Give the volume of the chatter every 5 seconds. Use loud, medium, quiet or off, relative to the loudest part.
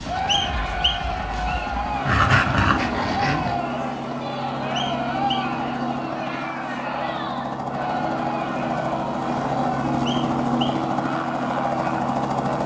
loud, loud, medium.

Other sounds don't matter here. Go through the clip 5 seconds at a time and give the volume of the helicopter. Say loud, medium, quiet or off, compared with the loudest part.
medium, loud, loud.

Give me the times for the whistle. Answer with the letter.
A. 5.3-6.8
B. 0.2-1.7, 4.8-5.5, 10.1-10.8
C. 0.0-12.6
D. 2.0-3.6
B.